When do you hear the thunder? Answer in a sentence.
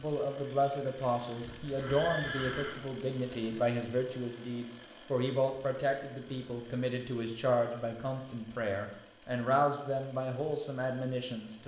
The thunder can't be heard in this clip.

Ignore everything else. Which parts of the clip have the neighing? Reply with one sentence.
The neighing can be heard from 1.6 to 2.8 s.